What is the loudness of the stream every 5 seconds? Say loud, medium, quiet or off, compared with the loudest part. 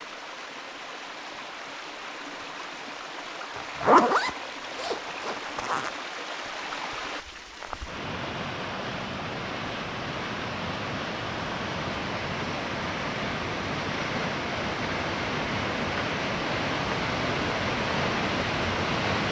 medium, medium, loud, loud.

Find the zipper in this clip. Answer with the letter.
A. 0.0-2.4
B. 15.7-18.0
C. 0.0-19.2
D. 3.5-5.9
D.